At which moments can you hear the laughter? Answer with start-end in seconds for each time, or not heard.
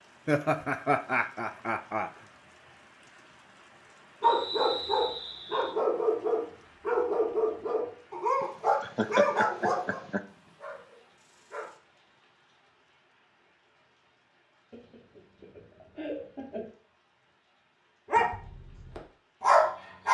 0.2-2.1, 8.4-10.2, 14.7-16.7.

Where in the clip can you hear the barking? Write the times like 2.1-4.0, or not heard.
4.2-11.8, 18.1-20.0.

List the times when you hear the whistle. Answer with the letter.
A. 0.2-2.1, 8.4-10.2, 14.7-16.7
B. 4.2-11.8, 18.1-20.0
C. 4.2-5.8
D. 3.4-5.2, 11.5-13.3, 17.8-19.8
C.